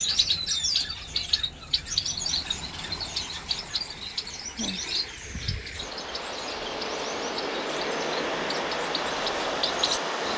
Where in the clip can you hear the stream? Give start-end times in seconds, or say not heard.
2.0-10.3.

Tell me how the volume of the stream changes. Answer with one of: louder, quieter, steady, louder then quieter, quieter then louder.
louder.